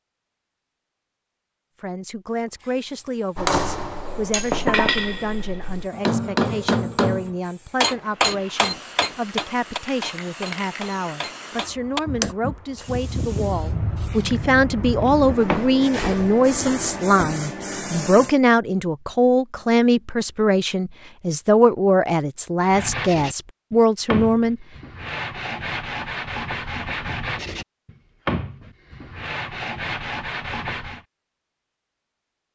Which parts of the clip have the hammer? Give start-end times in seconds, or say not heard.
3.4-12.3.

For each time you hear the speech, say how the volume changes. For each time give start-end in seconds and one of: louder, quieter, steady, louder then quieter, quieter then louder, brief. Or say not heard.
1.8-24.6 louder.